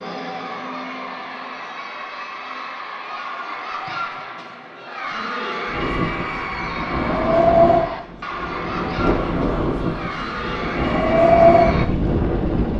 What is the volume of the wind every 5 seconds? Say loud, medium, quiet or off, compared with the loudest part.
off, loud, loud.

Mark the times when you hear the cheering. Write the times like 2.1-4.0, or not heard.
0.0-11.8.